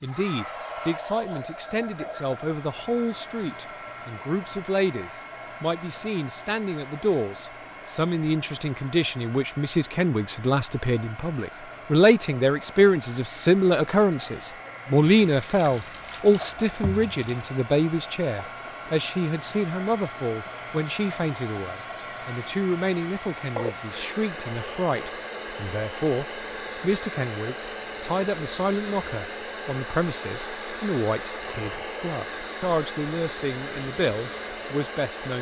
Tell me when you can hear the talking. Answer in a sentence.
The talking can be heard from 0.0 to 35.3 s.